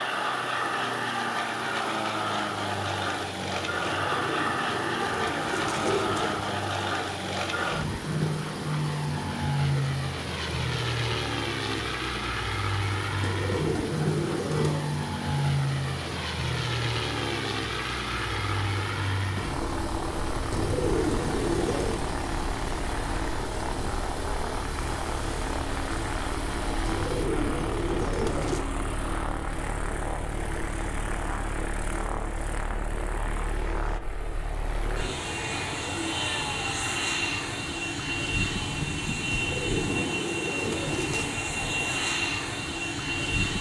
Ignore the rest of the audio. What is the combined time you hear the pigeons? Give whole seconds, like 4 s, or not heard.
10 s.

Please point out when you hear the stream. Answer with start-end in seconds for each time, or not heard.
0.0-27.2.